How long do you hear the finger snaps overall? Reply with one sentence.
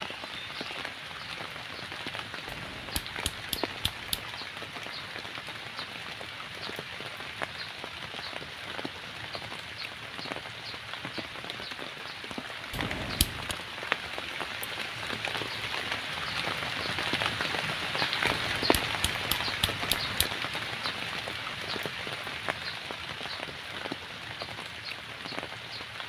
You can hear the finger snaps for 5 seconds altogether.